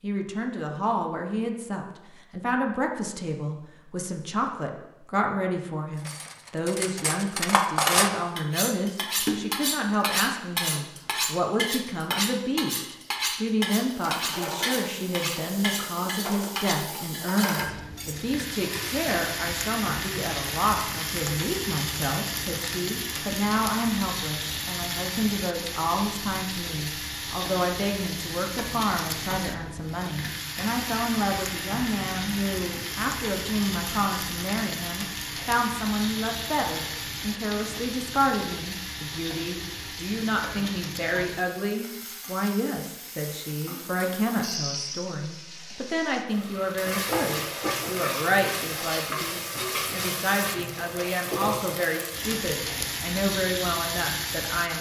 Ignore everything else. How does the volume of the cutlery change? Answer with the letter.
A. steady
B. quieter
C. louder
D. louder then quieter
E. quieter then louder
B.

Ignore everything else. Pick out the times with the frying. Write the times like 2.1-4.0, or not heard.
13.8-54.7.